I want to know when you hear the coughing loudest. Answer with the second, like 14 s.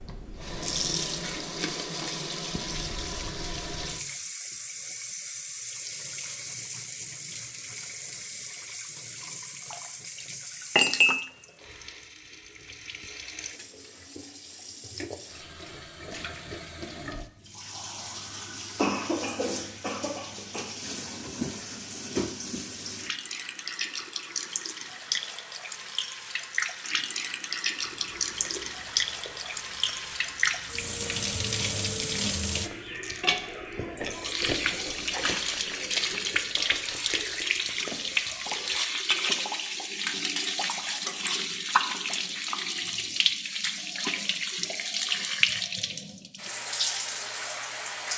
19 s.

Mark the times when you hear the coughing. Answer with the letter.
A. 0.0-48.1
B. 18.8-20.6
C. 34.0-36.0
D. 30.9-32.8
B.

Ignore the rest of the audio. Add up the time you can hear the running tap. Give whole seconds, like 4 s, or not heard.
48 s.